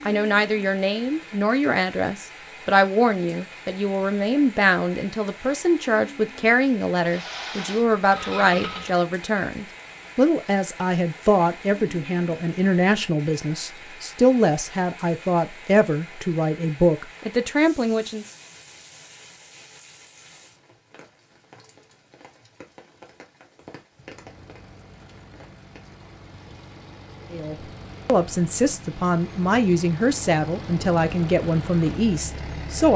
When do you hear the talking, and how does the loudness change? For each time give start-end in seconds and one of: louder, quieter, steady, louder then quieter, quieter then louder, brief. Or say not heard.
0.1-18.3 steady
27.3-32.9 steady.